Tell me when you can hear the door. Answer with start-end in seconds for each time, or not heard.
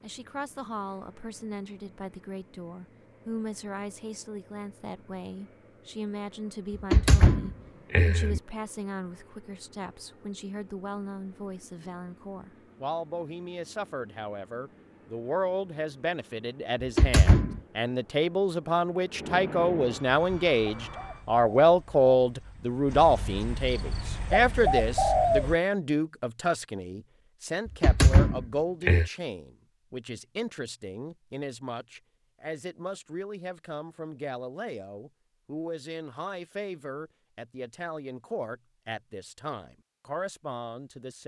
6.9-8.4, 16.8-17.6, 27.6-29.1.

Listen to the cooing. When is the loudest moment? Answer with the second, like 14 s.
25 s.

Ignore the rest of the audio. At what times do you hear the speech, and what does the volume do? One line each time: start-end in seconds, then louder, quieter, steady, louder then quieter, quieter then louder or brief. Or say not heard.
0.0-41.2 louder then quieter.